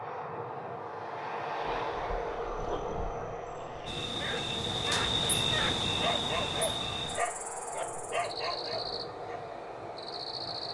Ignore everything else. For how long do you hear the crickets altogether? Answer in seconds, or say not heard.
7 s.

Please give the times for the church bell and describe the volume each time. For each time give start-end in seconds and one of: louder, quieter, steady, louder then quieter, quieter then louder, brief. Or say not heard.
not heard.